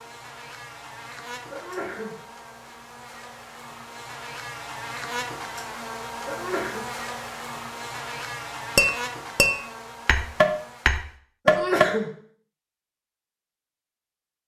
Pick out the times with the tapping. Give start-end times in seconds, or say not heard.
8.8-11.8.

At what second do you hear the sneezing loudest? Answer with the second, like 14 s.
12 s.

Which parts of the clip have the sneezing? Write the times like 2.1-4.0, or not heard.
1.5-2.1, 6.2-6.8, 11.4-12.1.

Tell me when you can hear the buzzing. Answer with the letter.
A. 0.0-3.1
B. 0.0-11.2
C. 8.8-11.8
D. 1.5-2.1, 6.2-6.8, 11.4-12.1
B.